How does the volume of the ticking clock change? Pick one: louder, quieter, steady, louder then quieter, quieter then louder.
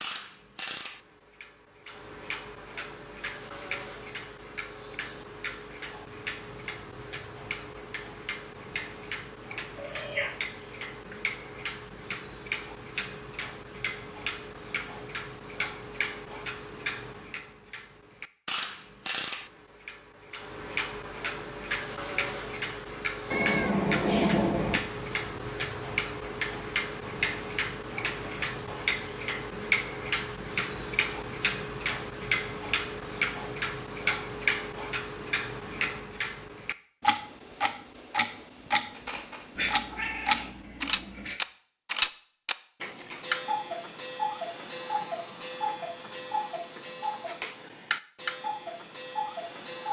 louder.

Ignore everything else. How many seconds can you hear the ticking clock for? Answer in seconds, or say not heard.
50 s.